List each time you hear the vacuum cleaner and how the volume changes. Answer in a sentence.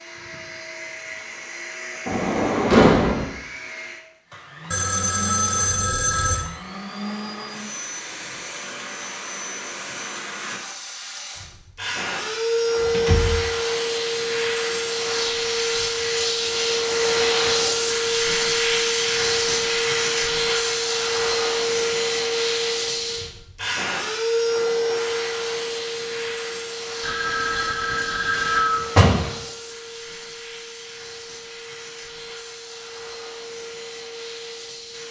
The vacuum cleaner can be heard from 0.0 to 35.0 s, getting louder then quieter.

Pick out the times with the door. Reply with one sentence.
You can hear the door from 2.0 to 3.2 s, from 12.8 to 13.4 s and from 28.4 to 29.3 s.